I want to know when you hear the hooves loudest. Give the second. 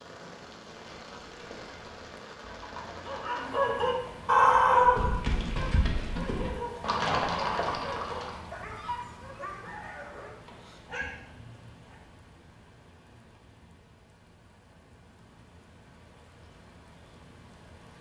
7 s.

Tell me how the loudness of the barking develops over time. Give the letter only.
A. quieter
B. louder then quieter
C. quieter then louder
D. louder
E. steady
A.